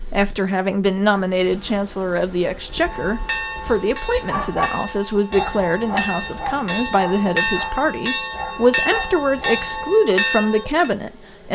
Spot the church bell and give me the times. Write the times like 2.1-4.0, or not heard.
2.7-10.9.